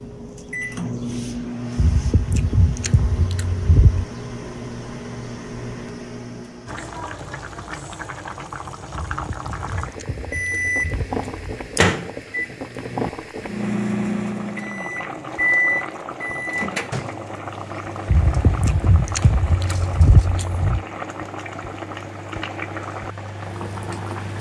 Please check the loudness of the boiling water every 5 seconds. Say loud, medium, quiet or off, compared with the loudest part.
off, loud, loud, loud, loud.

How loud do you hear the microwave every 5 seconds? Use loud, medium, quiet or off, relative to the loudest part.
medium, medium, loud, loud, quiet.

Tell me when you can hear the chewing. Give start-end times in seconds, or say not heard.
1.8-4.0, 8.9-11.6, 18.1-20.9.